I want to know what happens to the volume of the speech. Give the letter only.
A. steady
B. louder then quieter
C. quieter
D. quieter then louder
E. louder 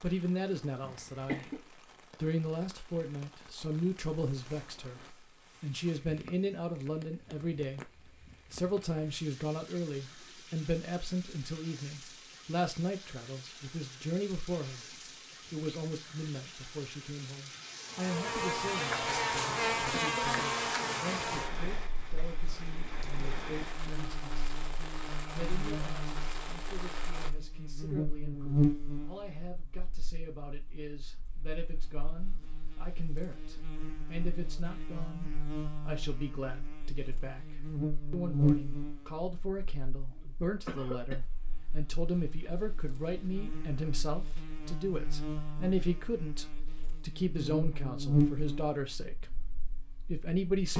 D.